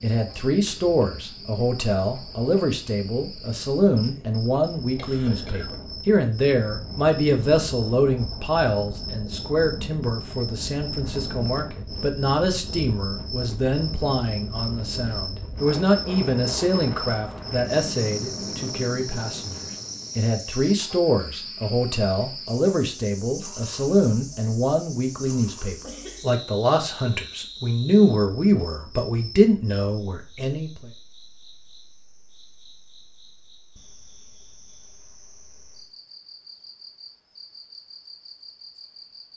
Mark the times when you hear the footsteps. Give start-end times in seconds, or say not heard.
not heard.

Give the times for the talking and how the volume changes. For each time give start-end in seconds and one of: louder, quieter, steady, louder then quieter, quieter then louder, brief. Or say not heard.
0.0-30.9 steady.